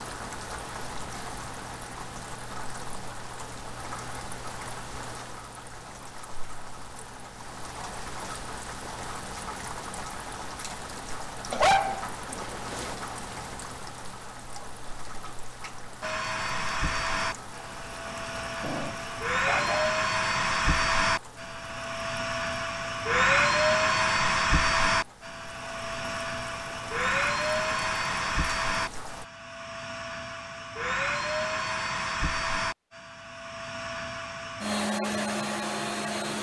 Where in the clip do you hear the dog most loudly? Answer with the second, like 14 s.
12 s.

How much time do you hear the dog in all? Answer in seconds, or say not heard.
3 s.